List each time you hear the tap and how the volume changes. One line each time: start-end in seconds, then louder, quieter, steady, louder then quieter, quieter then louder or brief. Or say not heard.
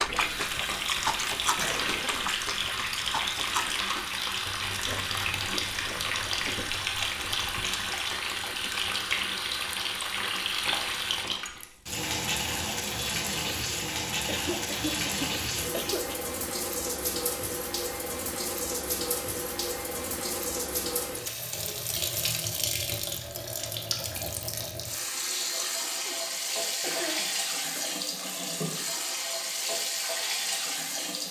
0.0-31.2 steady.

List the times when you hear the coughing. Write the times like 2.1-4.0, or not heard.
1.6-2.4, 14.2-16.3, 26.1-28.0.